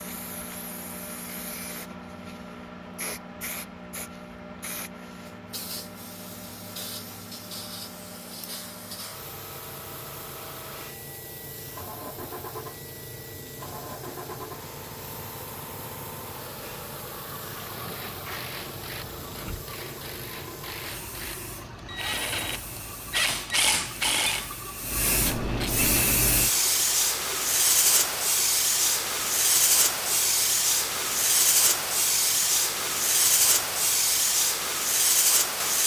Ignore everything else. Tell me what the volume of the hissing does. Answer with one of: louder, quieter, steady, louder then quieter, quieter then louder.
louder.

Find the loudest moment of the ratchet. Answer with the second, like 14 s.
24 s.